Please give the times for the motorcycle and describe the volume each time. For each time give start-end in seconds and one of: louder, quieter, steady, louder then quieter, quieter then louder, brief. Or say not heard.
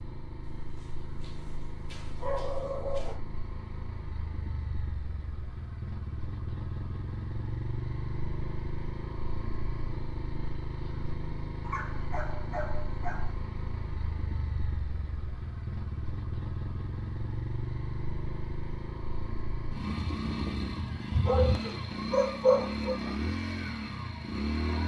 0.0-24.8 louder.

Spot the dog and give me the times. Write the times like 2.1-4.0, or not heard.
0.4-3.2, 11.6-13.3, 21.1-22.9.